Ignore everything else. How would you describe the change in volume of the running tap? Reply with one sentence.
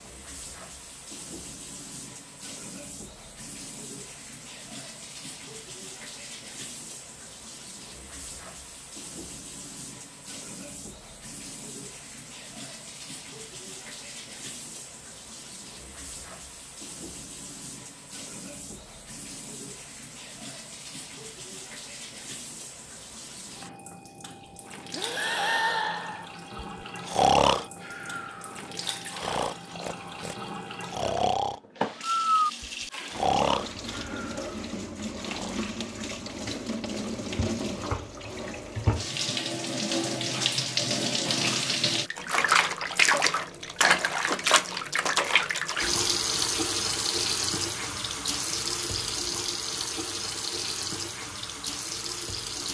The loudness of the running tap goes up.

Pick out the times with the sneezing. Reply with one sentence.
You can't hear the sneezing here.